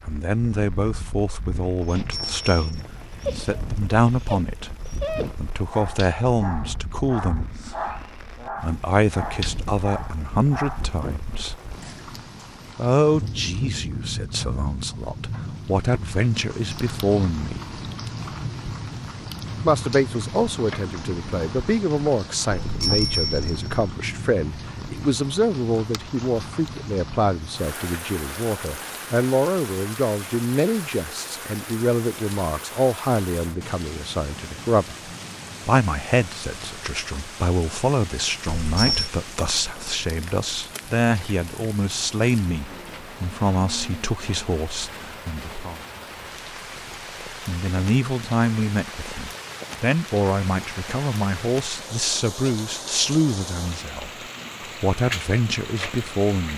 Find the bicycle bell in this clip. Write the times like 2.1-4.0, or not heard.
1.8-2.9, 22.5-23.9, 38.5-39.1.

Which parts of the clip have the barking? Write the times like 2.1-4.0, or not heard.
1.9-11.0.